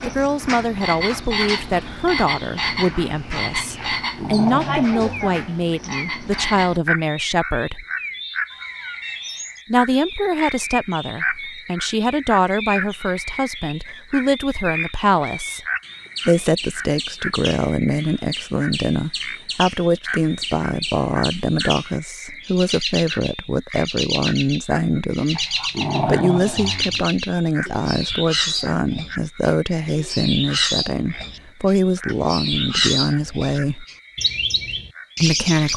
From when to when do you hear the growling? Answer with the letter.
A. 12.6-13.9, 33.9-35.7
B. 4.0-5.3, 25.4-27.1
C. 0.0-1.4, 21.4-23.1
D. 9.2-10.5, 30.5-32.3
B.